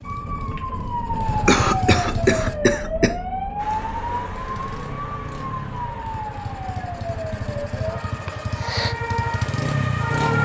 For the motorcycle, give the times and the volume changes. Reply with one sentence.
The motorcycle can be heard briefly from 0.0 to 2.6 s; and from 4.3 to 10.4 s, getting louder.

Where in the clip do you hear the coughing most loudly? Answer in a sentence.
The loudest moment of the coughing is at 2 seconds.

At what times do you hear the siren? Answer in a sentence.
You can hear the siren from 0.0 to 10.4 s.